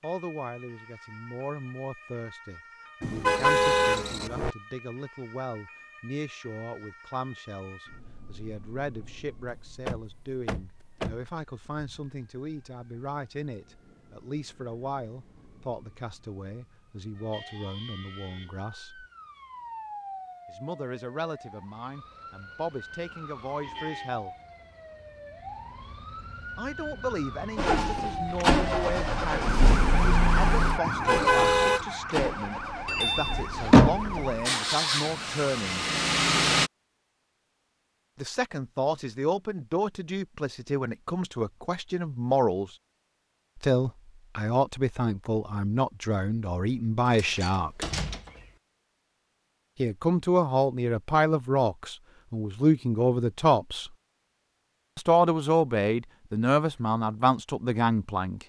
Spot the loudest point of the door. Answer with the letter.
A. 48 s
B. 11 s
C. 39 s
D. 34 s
D.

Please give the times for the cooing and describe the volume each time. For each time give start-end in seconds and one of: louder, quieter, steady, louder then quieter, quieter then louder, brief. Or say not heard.
not heard.